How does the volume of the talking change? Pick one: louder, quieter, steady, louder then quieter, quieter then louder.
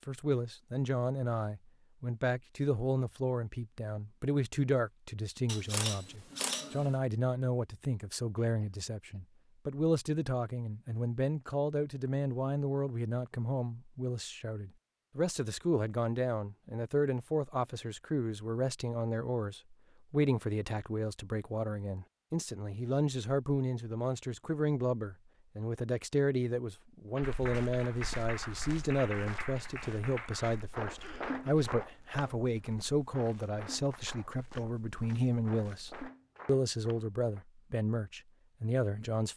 steady.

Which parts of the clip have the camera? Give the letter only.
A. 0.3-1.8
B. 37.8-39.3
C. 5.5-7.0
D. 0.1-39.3
C.